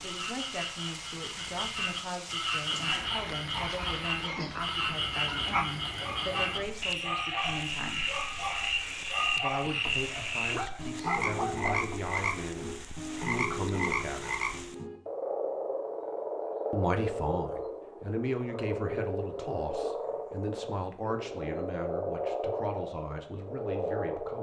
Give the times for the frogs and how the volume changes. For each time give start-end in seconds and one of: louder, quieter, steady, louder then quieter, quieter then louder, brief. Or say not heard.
0.0-24.3 steady.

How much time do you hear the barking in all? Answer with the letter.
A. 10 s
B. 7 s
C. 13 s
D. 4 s
A.